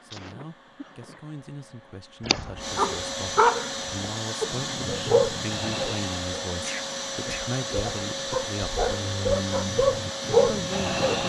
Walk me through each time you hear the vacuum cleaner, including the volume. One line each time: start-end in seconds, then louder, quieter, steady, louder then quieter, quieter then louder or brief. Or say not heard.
0.0-11.2 louder.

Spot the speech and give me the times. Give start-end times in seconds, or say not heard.
0.0-8.8, 10.3-11.2.